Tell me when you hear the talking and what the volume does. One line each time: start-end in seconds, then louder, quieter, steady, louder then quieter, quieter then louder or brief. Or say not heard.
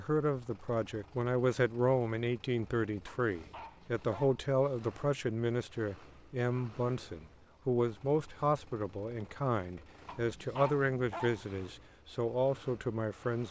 0.0-13.4 steady.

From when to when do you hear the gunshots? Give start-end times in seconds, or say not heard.
not heard.